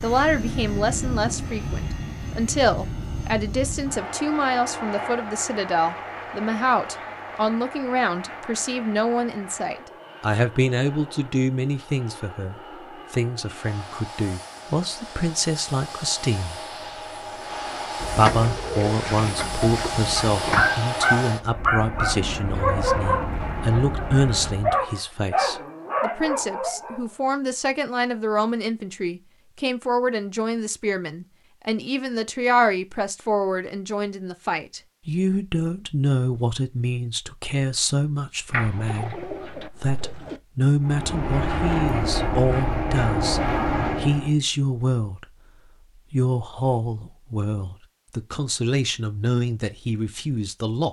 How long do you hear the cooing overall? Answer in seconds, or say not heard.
5 s.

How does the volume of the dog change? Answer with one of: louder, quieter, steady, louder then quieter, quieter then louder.
quieter.